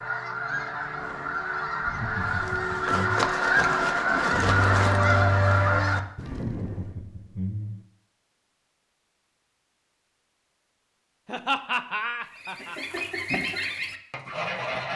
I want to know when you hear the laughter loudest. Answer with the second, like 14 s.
12 s.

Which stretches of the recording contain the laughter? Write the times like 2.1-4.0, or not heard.
1.8-3.2, 6.5-7.8, 11.2-13.0.